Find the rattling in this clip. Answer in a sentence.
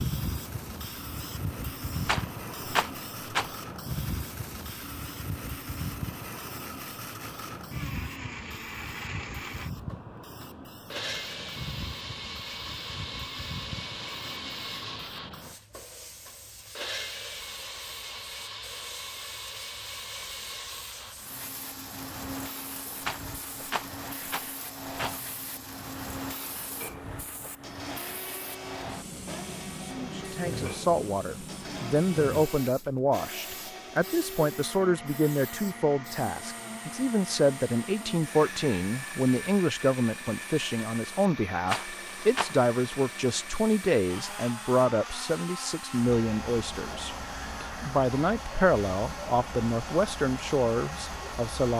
You can hear the rattling from 2.0 to 3.5 s, from 23.0 to 25.2 s and from 41.6 to 42.5 s.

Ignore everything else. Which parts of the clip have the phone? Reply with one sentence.
You can't hear the phone here.